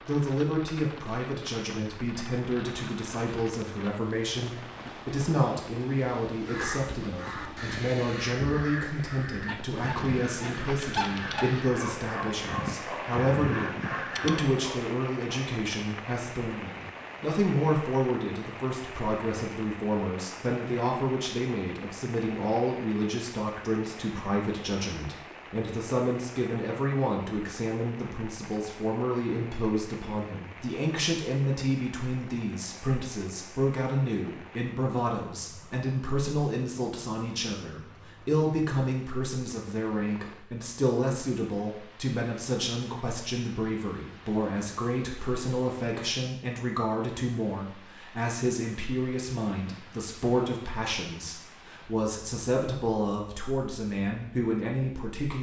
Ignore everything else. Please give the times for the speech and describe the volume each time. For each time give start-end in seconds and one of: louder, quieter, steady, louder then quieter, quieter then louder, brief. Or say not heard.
0.0-55.3 steady.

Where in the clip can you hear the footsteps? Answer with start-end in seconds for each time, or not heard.
not heard.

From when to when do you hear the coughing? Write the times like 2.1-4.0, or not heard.
not heard.